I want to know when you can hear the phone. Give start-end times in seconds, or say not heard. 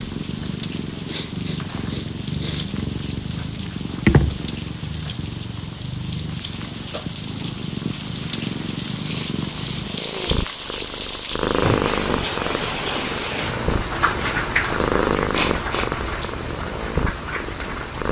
not heard.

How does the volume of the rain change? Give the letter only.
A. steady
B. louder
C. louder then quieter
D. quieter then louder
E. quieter
B.